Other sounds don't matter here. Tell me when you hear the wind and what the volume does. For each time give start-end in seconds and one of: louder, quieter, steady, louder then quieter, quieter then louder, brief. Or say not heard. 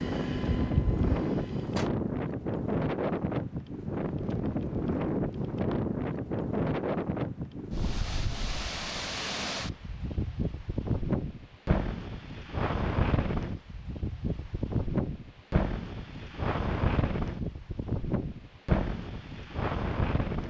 0.0-20.4 steady.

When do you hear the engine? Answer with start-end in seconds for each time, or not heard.
0.0-1.9.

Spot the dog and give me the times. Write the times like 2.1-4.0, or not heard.
not heard.